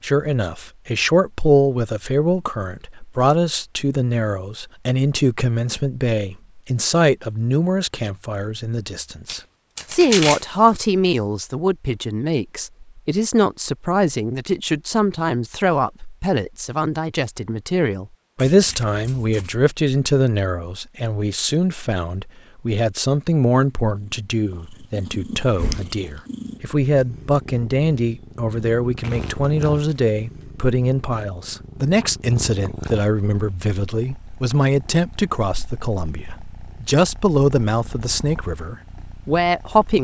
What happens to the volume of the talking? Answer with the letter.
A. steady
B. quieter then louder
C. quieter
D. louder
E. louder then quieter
A.